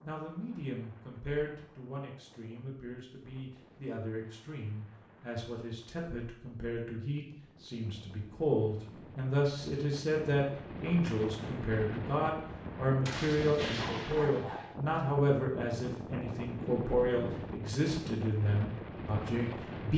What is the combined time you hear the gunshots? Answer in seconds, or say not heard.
2 s.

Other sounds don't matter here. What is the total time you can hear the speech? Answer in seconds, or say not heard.
20 s.